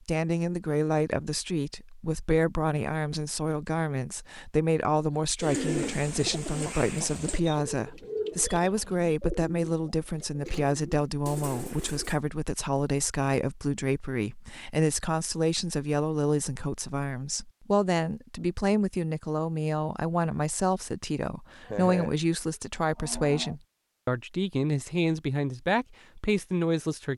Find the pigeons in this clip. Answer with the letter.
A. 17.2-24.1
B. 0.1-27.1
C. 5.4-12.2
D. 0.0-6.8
C.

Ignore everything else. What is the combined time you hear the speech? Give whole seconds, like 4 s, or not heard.
27 s.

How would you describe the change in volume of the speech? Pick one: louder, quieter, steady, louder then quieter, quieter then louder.
steady.